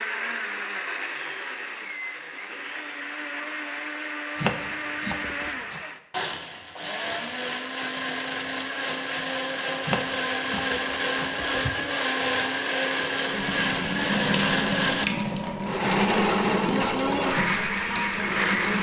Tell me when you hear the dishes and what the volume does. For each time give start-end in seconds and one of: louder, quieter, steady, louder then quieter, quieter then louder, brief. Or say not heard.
not heard.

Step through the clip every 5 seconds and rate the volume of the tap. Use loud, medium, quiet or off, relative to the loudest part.
off, off, loud, loud.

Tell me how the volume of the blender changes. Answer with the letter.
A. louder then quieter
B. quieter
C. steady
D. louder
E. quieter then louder
D.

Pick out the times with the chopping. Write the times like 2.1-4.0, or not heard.
4.3-5.8, 9.8-11.7.